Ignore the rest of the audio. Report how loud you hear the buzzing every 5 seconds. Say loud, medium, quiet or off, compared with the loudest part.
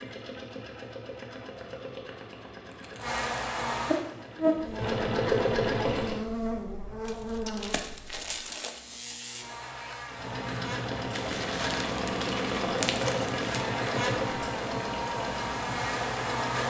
loud, medium, medium, loud.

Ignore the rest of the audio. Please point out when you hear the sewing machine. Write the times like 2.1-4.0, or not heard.
0.0-6.2, 10.1-16.6.